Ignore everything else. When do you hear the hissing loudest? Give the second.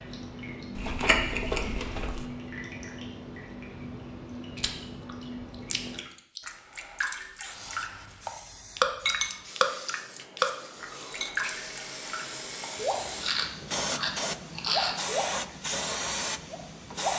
16 s.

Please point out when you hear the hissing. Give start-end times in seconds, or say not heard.
7.2-17.1.